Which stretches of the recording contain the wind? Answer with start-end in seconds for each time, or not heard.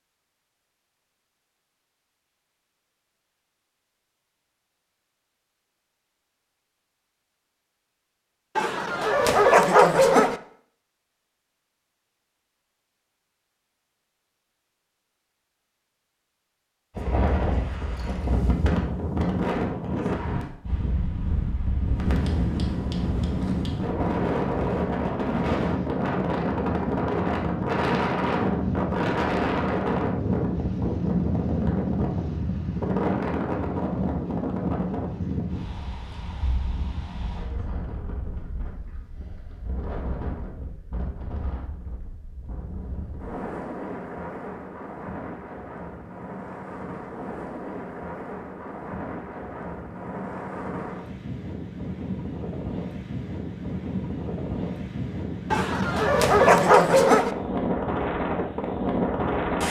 16.9-59.6.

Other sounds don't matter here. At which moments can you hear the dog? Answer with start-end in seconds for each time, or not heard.
8.6-10.3, 55.5-57.3.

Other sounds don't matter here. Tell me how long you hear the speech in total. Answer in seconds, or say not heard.
not heard.